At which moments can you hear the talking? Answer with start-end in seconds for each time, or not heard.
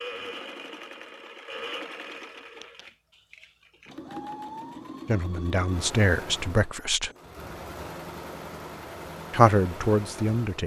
5.0-7.1, 9.3-10.6.